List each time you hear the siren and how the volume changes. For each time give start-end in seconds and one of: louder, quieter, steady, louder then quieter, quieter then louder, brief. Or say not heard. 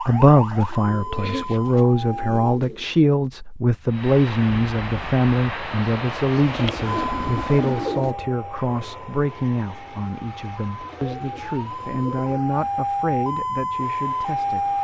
0.0-2.6 brief
6.8-14.8 quieter then louder.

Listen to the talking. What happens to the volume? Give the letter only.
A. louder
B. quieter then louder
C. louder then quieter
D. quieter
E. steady
D.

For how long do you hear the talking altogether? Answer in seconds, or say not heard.
15 s.